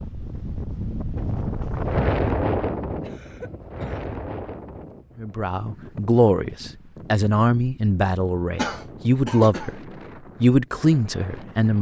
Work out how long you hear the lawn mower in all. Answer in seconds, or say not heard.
not heard.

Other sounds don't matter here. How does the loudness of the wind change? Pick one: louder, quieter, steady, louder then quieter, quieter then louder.
quieter.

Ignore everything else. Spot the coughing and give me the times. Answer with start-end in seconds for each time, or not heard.
3.0-4.1, 8.6-9.7.